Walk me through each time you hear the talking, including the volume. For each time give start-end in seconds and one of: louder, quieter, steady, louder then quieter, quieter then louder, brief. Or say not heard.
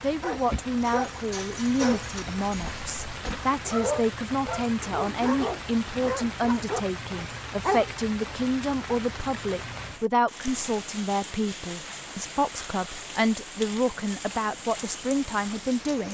0.0-16.0 steady.